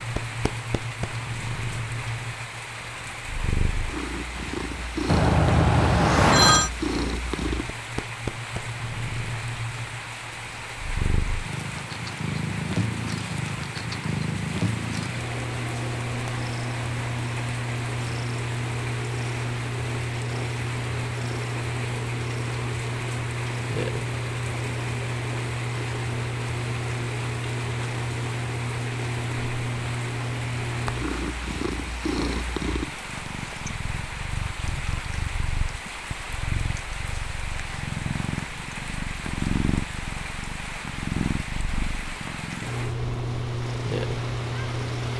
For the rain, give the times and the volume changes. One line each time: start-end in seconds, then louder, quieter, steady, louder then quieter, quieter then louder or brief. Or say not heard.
0.0-45.1 steady.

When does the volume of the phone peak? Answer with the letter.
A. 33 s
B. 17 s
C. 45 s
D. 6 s
D.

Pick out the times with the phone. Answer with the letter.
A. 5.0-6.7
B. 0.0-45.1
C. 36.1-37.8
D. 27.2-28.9
A.